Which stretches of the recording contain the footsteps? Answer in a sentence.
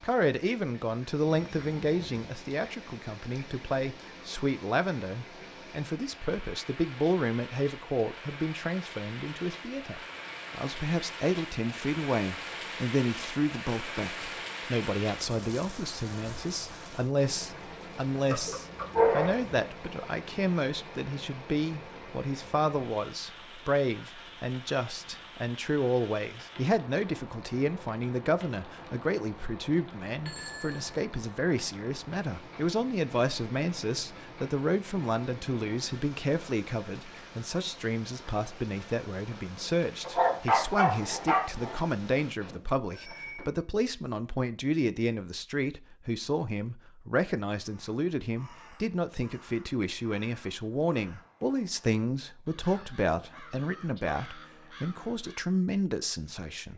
You can't hear the footsteps here.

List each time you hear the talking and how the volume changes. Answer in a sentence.
You can hear the talking from 0.0 to 56.7 s, at a steady volume.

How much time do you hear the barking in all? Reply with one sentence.
The barking can be heard for 3 seconds in total.